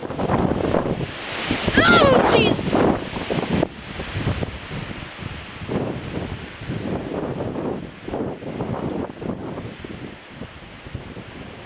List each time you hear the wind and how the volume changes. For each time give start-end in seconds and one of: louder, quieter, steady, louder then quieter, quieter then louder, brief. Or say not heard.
0.0-11.6 quieter.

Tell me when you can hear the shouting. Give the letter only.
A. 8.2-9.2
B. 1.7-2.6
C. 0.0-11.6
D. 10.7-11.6
B.